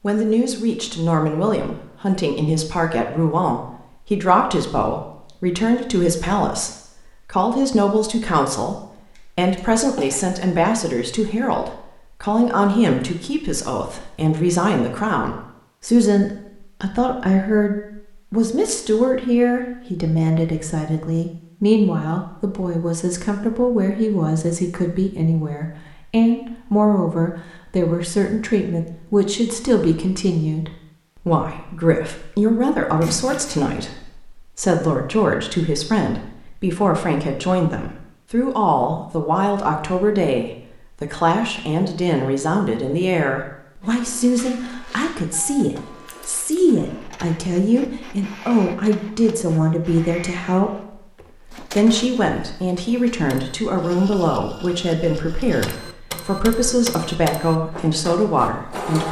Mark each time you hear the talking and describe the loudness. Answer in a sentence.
The talking can be heard from 0.0 to 59.0 s, at a steady volume.